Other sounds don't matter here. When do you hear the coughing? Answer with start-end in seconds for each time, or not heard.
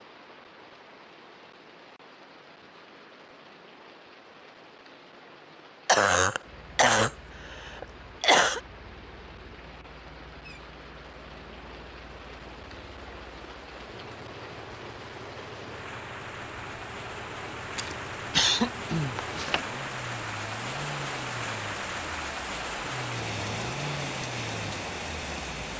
5.8-8.6, 17.8-19.6.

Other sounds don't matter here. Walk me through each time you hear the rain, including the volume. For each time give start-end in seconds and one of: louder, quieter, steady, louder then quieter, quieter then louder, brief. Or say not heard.
0.0-25.7 louder.